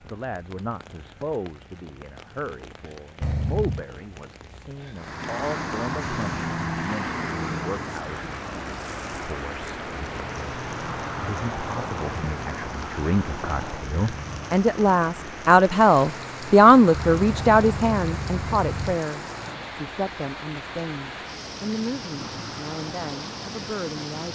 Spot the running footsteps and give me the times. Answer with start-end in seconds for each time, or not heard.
not heard.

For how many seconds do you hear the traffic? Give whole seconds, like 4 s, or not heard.
19 s.